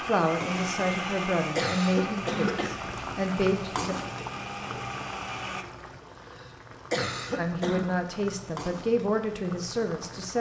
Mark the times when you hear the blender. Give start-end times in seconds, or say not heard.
0.0-5.7.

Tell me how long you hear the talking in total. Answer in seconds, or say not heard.
7 s.